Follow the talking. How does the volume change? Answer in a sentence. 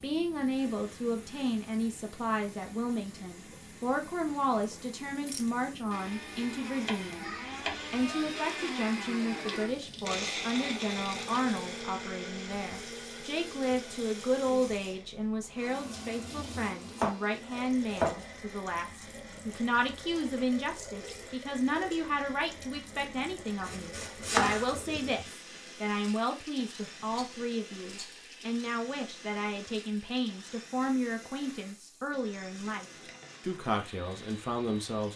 The volume of the talking stays about the same.